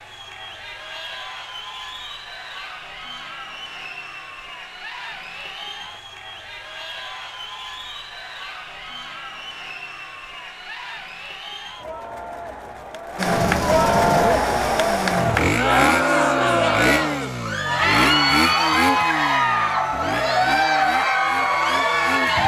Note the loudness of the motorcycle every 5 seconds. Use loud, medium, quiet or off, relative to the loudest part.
off, off, loud, loud, medium.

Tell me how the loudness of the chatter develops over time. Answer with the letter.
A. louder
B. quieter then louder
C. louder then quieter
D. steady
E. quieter
A.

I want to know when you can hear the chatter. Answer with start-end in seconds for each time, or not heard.
0.0-22.4.